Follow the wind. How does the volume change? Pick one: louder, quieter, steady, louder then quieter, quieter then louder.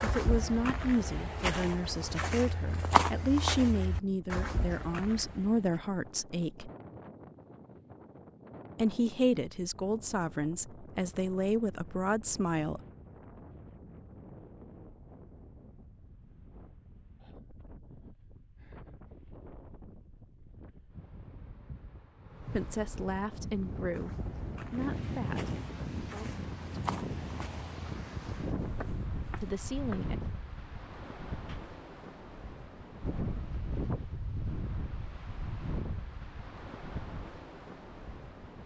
louder.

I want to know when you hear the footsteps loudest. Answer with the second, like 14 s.
3 s.